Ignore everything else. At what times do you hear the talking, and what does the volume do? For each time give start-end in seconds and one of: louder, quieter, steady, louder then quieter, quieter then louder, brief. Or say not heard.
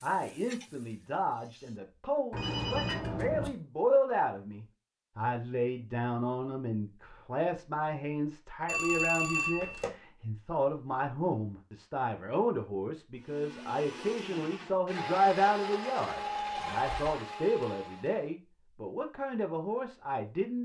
0.0-20.6 steady.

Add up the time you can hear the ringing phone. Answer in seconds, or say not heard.
3 s.